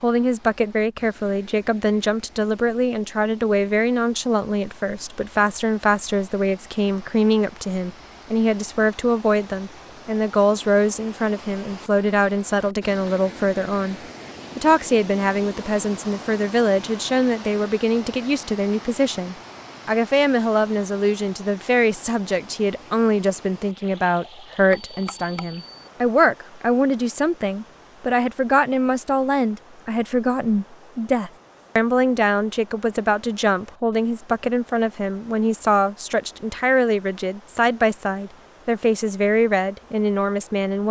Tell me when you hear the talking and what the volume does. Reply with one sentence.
The talking can be heard from 0.0 to 13.9 s, at a steady volume; and from 14.6 to 40.8 s, at a steady volume.